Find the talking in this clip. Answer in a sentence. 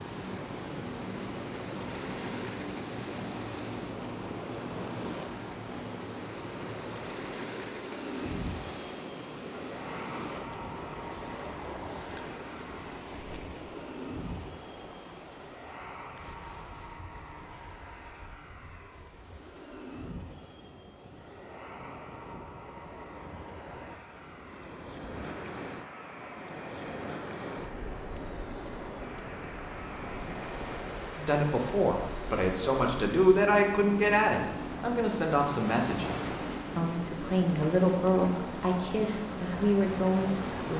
You can hear the talking from 31.1 to 40.7 s.